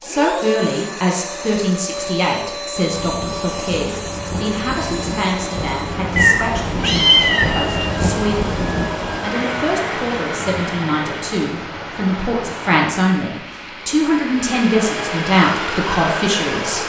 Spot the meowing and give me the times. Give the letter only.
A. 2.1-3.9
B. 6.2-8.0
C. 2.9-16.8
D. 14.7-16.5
B.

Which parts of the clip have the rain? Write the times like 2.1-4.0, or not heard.
2.9-16.8.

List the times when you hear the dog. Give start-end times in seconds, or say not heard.
not heard.